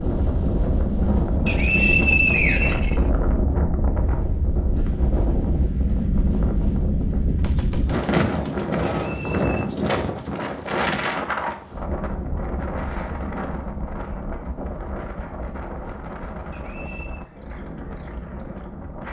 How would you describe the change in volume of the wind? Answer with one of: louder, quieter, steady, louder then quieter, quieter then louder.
quieter.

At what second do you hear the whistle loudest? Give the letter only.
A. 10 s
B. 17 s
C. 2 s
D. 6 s
C.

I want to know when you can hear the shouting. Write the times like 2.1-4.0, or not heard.
not heard.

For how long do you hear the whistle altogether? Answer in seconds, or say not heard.
3 s.